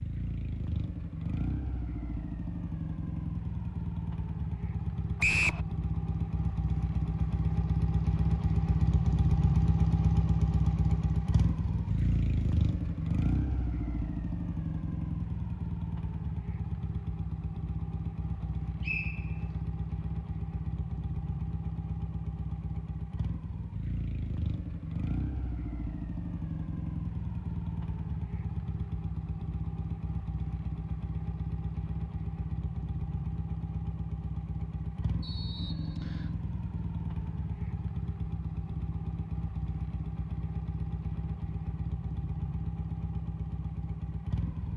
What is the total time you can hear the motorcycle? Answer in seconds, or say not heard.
45 s.